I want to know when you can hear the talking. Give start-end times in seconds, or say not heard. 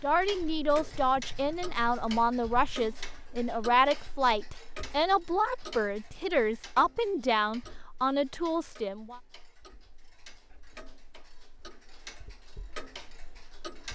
0.0-9.2.